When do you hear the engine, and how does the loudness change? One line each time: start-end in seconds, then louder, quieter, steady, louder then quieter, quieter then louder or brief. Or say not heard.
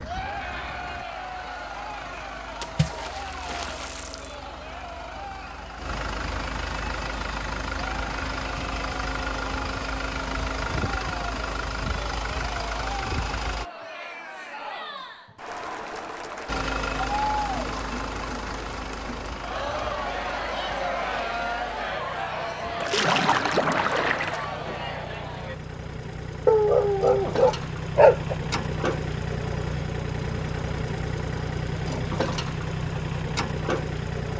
0.0-13.7 louder
16.4-34.3 quieter then louder.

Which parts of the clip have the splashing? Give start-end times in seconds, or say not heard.
2.6-4.3, 22.8-24.4.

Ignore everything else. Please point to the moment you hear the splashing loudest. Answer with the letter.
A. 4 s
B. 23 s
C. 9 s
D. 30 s
B.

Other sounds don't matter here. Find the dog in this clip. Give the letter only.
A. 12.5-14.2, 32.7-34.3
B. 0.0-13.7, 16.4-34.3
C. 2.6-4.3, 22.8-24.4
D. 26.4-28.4
D.